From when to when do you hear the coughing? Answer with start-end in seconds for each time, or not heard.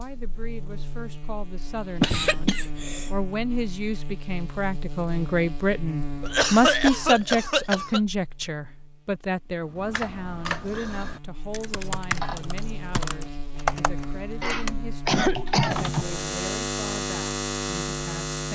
2.0-3.1, 6.2-8.0, 14.4-15.8.